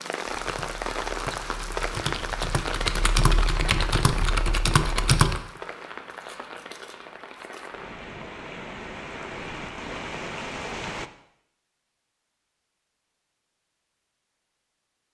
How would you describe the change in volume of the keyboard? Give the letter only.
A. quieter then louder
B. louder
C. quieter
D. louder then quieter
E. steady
B.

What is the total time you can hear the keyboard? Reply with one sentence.
You can hear the keyboard for 5 seconds altogether.